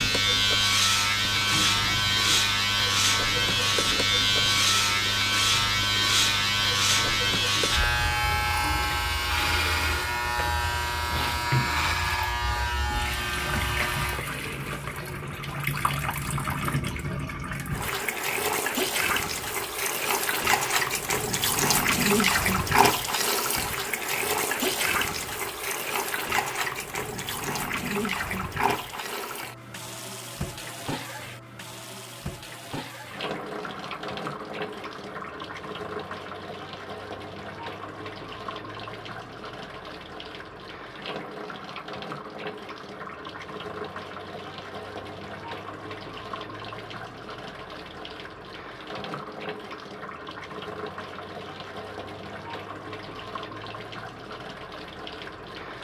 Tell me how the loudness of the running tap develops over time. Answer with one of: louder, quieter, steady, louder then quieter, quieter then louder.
louder then quieter.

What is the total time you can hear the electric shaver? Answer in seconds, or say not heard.
14 s.